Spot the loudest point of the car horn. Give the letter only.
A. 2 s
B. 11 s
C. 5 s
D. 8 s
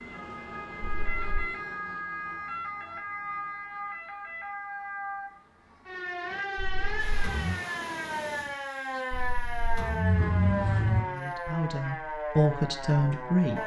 B.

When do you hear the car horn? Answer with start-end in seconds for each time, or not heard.
0.8-1.4, 6.5-7.5, 9.1-11.1.